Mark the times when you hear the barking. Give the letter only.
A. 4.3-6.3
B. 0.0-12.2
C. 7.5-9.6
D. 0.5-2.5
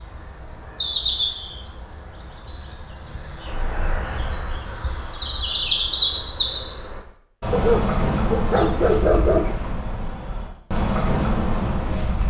C.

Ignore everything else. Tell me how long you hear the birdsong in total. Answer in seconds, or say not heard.
12 s.